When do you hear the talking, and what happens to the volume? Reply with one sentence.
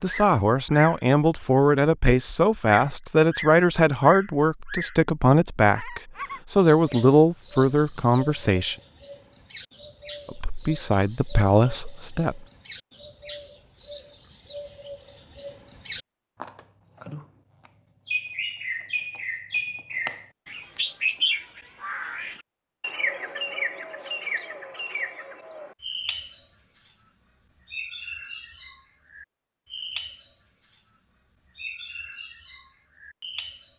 The talking can be heard from 0.0 to 8.8 s, at a steady volume; and briefly from 10.2 to 12.4 s.